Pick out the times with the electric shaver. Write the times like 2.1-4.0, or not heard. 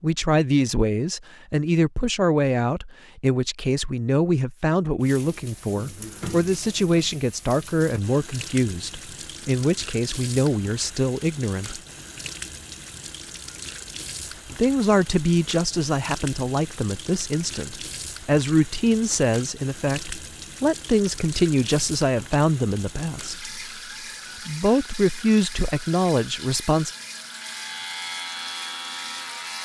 27.2-29.6.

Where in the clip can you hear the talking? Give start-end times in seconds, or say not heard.
0.0-11.8, 14.6-23.4, 24.4-26.9.